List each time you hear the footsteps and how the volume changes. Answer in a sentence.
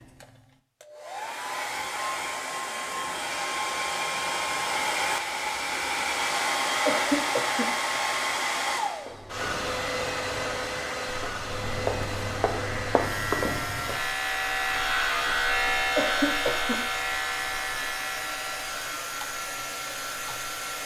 The footsteps can be heard from 9.0 to 14.1 s, getting louder.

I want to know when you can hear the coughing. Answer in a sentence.
You can hear the coughing from 6.8 to 7.7 s and from 15.9 to 16.8 s.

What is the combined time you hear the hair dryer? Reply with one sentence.
You can hear the hair dryer for 21 seconds altogether.